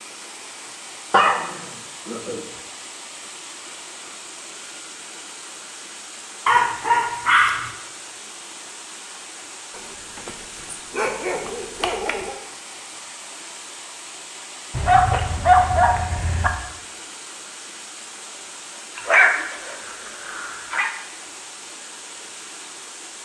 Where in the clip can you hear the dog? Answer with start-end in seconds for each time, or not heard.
1.1-2.4, 6.5-7.7, 9.8-12.3, 14.7-16.5, 18.9-20.9.